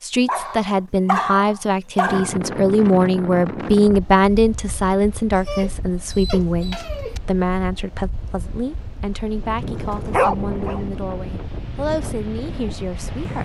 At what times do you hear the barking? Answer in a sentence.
You can hear the barking from 0.2 to 2.4 s, from 5.3 to 7.2 s and from 9.8 to 10.8 s.